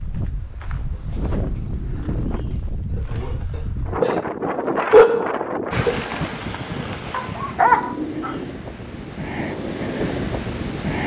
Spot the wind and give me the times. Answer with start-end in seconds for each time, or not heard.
0.0-11.0.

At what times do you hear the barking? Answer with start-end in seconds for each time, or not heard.
3.0-8.3.